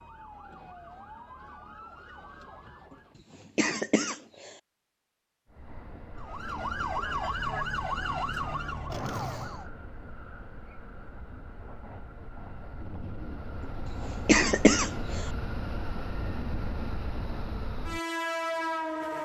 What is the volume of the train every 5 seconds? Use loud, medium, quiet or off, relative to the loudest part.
off, quiet, medium, loud.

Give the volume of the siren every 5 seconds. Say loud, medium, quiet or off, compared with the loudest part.
quiet, loud, off, off.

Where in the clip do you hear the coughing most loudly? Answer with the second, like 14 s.
15 s.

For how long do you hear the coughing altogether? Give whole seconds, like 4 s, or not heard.
3 s.